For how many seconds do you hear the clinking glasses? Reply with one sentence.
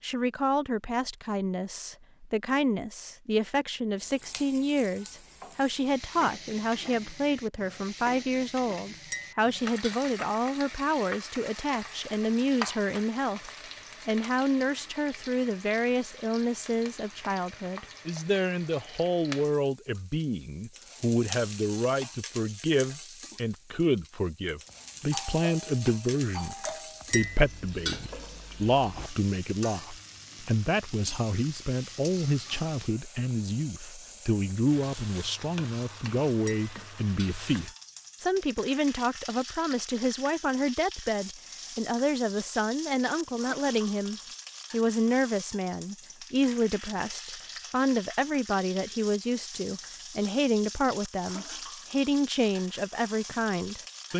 You can hear the clinking glasses for 3 seconds altogether.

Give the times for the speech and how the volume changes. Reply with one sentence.
The speech can be heard from 0.0 to 54.1 s, at a steady volume.